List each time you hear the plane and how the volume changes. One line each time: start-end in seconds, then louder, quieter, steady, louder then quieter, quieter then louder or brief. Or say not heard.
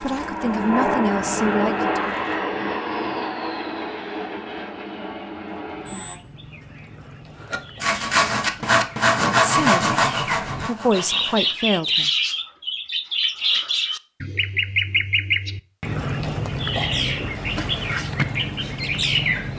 0.0-6.2 quieter.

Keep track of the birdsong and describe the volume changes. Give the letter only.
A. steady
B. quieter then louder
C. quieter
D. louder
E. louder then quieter
D.